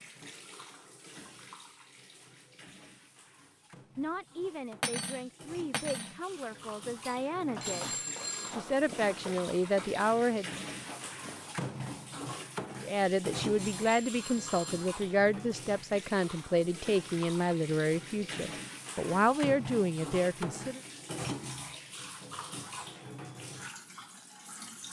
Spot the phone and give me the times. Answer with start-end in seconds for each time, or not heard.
7.6-8.6, 13.8-14.9.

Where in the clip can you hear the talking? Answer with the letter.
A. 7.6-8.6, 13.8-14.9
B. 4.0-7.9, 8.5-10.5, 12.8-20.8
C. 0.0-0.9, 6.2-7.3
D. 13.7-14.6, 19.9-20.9
B.